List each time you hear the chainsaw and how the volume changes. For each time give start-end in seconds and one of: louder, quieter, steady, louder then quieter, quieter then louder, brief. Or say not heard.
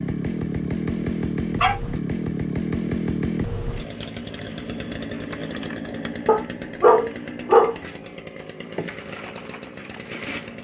0.0-10.5 quieter.